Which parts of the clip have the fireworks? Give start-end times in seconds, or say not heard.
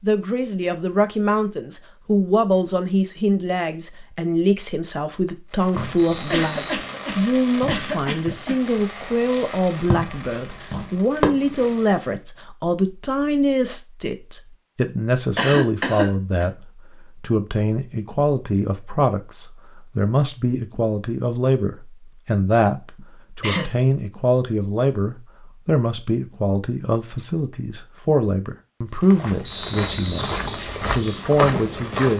5.5-12.2.